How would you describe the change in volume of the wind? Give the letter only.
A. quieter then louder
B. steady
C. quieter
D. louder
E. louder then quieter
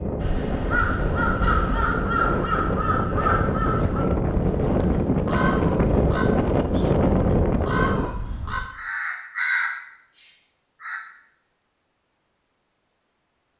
D.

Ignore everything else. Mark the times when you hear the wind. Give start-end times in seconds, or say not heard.
0.0-8.1.